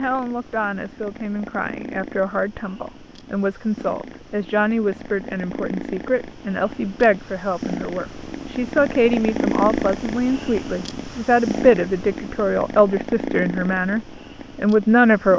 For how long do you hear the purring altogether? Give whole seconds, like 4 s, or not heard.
15 s.